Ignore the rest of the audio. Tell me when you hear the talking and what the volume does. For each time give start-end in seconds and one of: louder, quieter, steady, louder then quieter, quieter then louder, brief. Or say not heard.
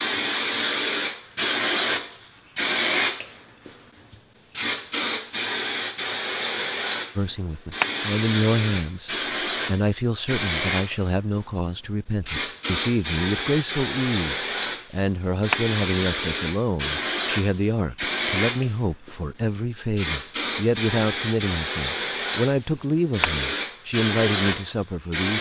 7.2-25.3 steady.